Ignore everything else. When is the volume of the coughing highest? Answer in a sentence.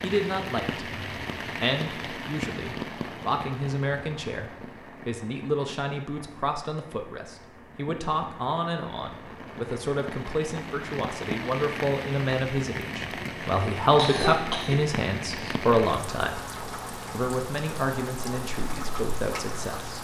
The volume of the coughing peaks at 14 seconds.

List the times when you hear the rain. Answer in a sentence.
You can hear the rain from 0.0 to 19.9 s.